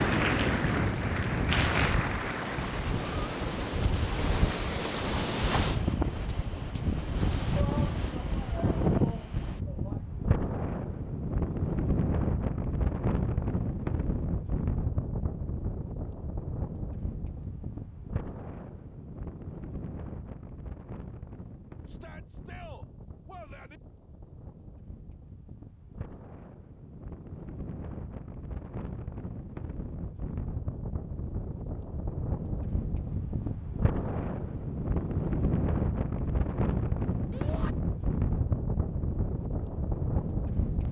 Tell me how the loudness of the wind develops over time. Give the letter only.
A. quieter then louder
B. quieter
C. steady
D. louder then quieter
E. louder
A.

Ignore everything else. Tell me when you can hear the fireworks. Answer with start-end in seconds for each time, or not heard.
not heard.